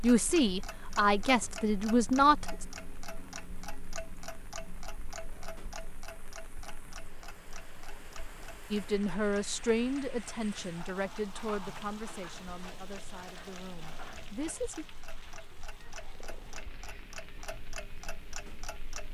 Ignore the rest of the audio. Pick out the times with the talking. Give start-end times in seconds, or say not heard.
0.0-2.6, 8.7-14.8.